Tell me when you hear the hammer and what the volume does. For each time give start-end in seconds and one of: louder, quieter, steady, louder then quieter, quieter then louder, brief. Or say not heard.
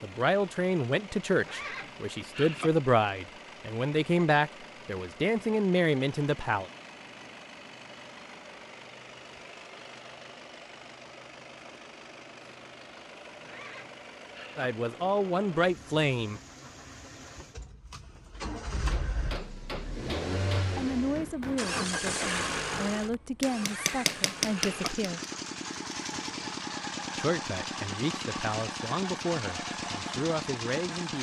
18.9-25.1 louder.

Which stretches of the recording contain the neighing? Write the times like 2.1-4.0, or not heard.
1.4-2.7, 13.4-14.7, 23.6-24.9.